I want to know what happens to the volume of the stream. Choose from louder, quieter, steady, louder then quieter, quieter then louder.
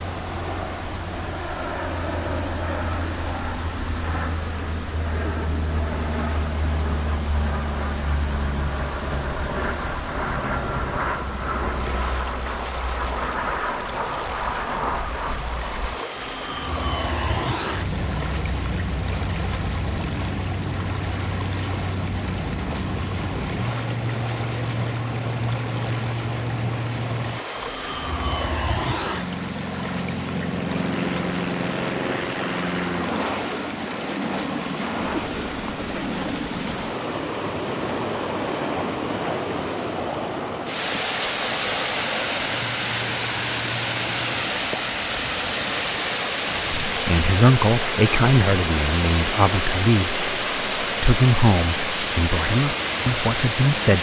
louder.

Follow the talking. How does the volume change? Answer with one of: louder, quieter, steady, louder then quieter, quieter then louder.
steady.